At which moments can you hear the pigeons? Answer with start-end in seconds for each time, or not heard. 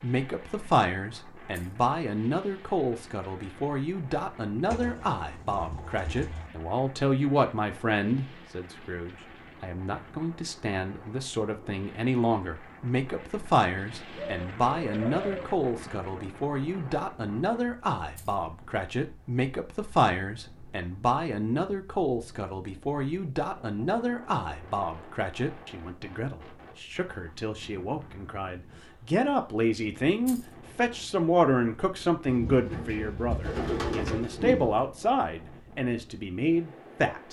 4.7-6.5, 14.2-15.3, 32.2-34.9.